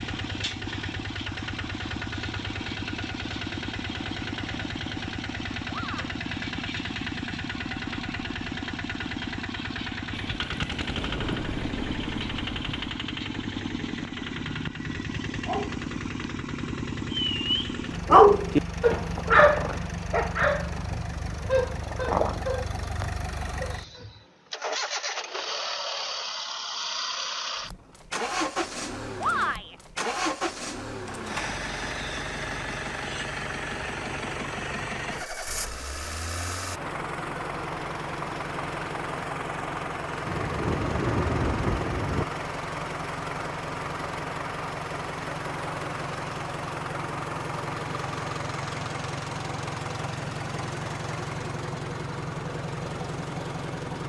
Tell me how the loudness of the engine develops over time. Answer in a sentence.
The volume of the engine stays about the same.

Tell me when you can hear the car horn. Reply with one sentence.
You can't hear the car horn here.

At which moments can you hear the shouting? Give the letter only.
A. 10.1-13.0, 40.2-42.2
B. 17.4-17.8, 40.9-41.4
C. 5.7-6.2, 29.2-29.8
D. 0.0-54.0
C.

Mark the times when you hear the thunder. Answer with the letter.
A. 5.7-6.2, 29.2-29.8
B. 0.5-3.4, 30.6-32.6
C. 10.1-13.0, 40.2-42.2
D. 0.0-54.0
C.